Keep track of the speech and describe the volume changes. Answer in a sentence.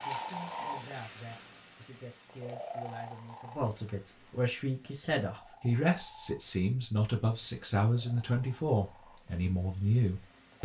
The volume of the speech goes up.